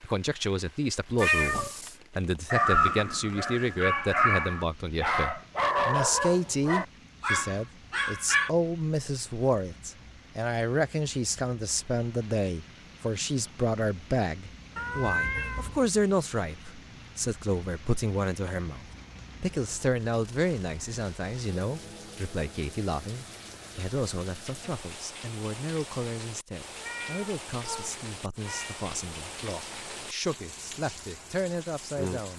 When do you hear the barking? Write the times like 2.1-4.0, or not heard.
2.5-8.5.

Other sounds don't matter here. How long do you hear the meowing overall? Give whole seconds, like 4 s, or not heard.
4 s.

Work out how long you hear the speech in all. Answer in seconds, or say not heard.
32 s.